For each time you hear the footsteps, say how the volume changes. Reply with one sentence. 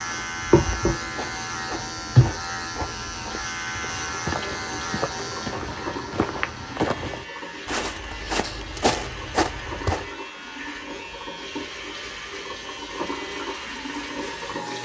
The footsteps can be heard from 0.0 to 10.1 s, getting louder.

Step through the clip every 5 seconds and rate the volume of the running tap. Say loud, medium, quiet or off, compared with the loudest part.
loud, medium, medium.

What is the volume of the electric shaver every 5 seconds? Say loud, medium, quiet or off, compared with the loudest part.
loud, medium, medium.